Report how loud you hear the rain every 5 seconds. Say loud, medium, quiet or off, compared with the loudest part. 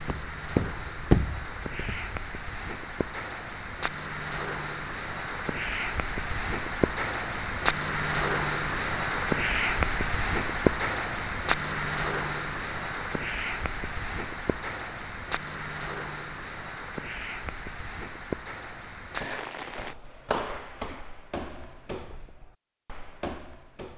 medium, loud, loud, medium, off.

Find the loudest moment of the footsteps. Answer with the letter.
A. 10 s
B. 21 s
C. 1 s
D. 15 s
C.